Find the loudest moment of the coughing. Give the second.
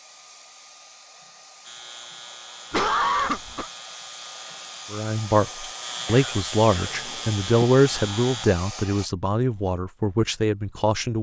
3 s.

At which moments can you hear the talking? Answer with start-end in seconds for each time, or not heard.
4.9-11.1.